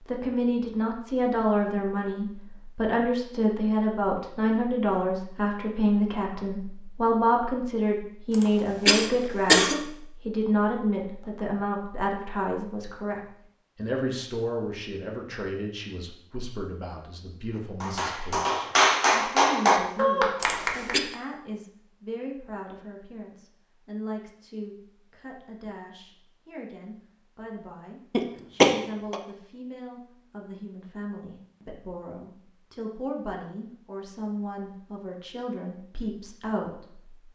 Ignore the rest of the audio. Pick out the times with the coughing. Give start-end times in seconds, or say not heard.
8.3-9.8, 20.4-21.0, 28.1-29.1.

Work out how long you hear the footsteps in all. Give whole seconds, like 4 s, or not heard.
not heard.